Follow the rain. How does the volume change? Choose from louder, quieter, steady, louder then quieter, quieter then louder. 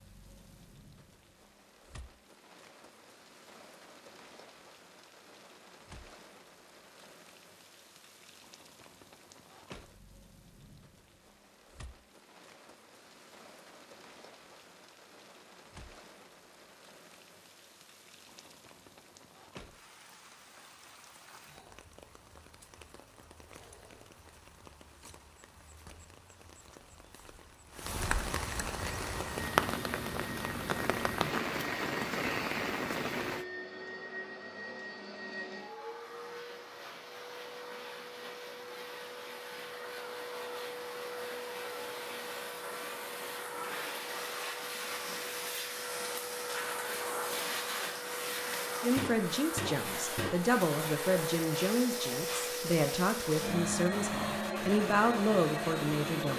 louder.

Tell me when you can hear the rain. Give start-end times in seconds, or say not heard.
0.0-33.5.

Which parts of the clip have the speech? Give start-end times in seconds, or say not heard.
48.8-56.3.